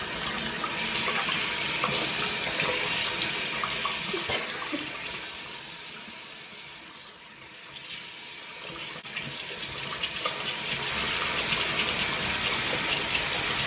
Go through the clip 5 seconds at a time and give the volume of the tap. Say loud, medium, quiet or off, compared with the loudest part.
loud, medium, loud.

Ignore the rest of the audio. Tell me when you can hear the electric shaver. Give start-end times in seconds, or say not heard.
10.9-13.6.